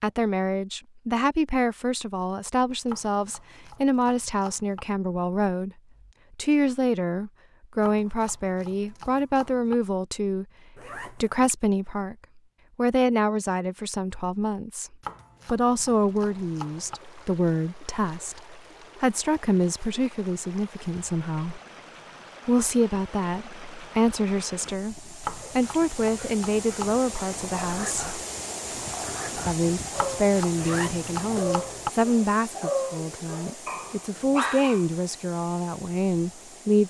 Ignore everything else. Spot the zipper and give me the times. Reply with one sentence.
The zipper can be heard from 10.8 to 11.3 s and from 30.6 to 31.5 s.